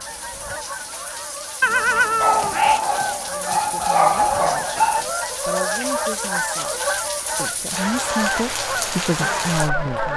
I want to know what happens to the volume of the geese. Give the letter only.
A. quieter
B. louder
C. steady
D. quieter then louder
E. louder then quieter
B.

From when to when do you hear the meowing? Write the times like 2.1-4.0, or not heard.
1.6-2.8.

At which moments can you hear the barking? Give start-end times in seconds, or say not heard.
2.2-5.0.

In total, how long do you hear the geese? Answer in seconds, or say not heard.
10 s.